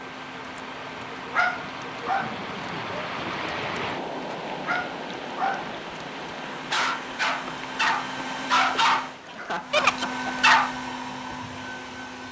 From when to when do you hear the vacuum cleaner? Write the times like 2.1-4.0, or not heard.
0.0-12.2.